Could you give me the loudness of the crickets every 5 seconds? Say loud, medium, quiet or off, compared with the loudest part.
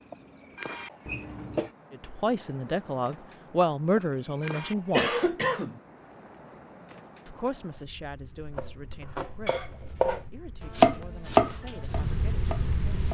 quiet, quiet, loud.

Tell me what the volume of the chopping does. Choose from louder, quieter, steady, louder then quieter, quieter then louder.
louder then quieter.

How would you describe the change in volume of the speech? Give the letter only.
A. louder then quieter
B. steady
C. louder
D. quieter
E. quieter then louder
D.